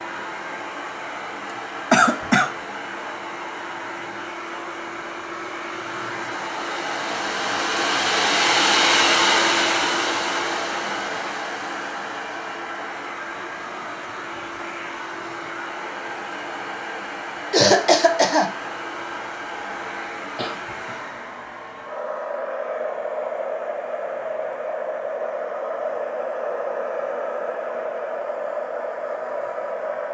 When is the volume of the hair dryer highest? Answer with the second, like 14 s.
9 s.